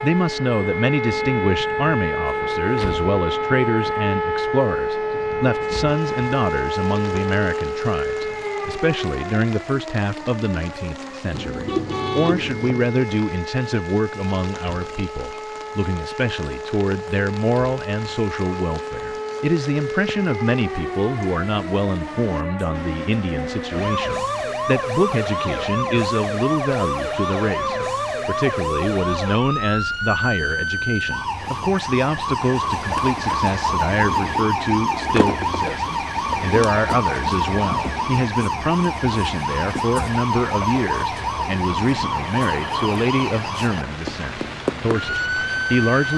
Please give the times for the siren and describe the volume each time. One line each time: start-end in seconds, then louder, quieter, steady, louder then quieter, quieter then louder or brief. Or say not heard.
0.0-46.1 quieter then louder.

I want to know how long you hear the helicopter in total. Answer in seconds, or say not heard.
not heard.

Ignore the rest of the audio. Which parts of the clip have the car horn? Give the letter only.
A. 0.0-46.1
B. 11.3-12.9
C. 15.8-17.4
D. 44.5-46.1
B.